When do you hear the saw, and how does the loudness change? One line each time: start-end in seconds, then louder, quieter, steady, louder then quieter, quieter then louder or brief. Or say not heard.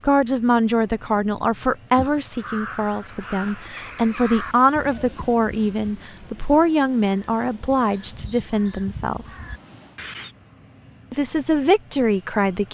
not heard.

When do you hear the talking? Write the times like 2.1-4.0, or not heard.
0.0-9.3, 11.1-12.6.